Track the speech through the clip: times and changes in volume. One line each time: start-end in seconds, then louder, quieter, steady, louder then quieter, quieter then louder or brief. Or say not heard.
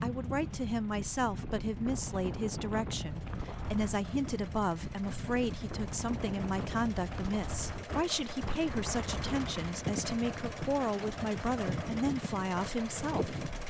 0.0-13.4 steady.